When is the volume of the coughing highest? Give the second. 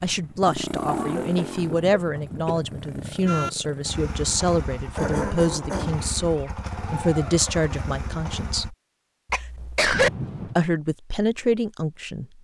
10 s.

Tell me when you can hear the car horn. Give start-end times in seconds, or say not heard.
1.8-3.5, 9.9-10.6.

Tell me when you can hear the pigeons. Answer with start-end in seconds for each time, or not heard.
not heard.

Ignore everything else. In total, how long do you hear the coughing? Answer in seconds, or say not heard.
4 s.